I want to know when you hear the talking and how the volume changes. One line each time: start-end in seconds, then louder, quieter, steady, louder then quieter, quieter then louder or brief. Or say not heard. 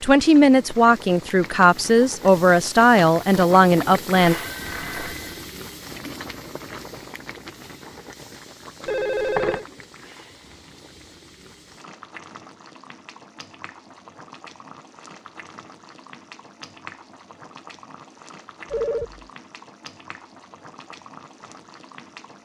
0.0-4.3 steady.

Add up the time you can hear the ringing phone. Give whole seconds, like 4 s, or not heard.
3 s.